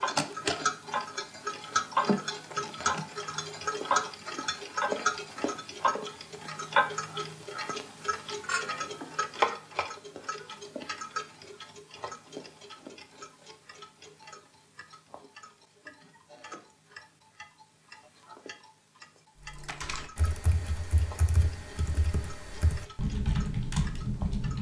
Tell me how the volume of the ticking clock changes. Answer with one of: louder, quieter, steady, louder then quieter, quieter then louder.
quieter.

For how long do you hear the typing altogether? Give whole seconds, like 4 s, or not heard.
5 s.